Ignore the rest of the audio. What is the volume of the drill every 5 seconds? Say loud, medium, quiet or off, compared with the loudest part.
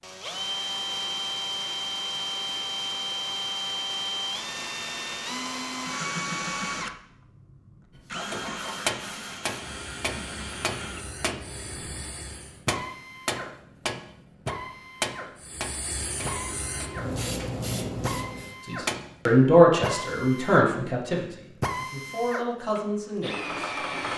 loud, loud, medium, medium, loud.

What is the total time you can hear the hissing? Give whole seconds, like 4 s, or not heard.
8 s.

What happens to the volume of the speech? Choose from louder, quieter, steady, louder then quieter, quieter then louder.
quieter.